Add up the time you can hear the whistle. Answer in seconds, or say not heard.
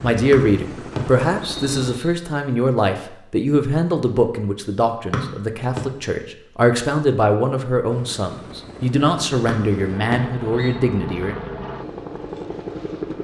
4 s.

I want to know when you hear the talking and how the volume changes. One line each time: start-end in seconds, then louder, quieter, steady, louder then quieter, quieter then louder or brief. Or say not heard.
0.0-11.3 steady.